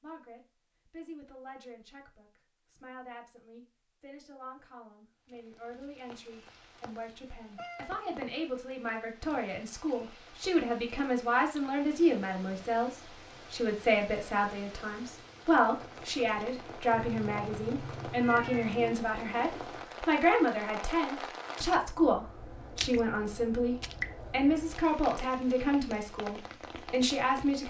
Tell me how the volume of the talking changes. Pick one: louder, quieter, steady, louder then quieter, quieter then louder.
louder.